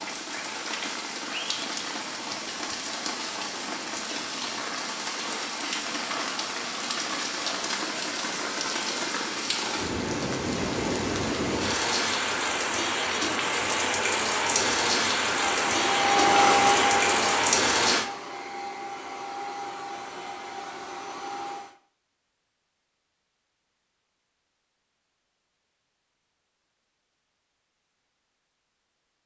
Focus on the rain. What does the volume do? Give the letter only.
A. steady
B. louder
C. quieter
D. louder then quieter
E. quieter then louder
B.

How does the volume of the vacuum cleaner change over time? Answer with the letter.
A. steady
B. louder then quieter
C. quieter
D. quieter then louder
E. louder
C.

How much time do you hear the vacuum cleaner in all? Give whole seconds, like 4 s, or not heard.
6 s.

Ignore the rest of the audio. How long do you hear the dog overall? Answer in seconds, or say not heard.
not heard.